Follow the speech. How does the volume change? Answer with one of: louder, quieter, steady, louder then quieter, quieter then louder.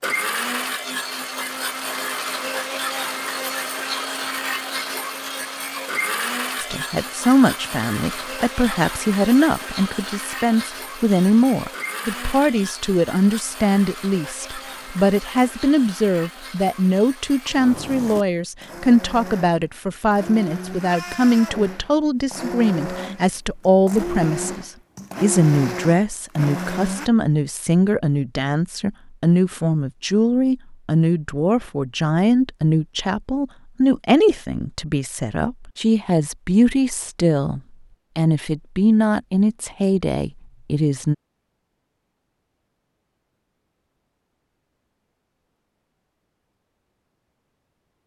steady.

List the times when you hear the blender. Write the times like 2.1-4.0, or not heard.
0.0-27.1.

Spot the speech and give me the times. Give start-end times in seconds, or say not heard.
6.6-41.1.